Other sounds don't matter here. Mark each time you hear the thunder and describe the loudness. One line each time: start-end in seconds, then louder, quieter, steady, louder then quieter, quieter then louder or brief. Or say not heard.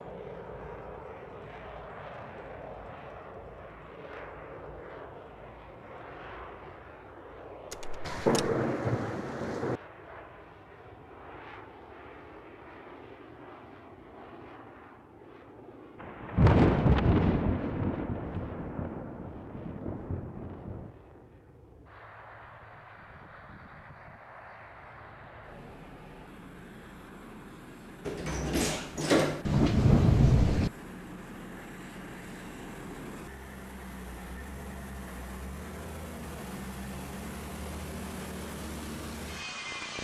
8.1-9.8 brief
16.0-20.9 quieter
29.4-30.7 brief.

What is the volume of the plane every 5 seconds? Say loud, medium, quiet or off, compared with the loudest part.
loud, medium, medium, medium, medium, medium, loud, loud.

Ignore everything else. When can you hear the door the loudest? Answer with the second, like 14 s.
29 s.